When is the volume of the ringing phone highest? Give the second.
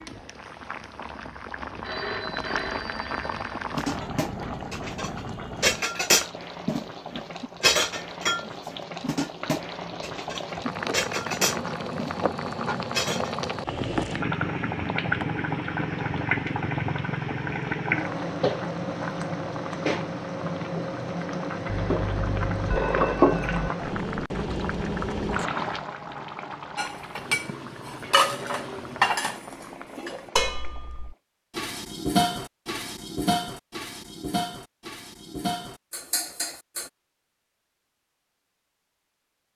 23 s.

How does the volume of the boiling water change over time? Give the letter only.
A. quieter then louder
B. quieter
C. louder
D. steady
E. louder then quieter
E.